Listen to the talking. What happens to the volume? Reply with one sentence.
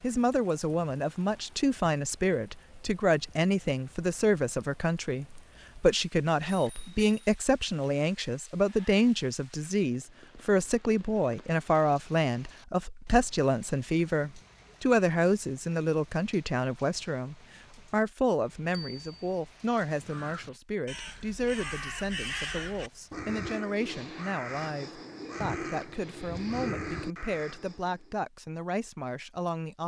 The volume of the talking goes down.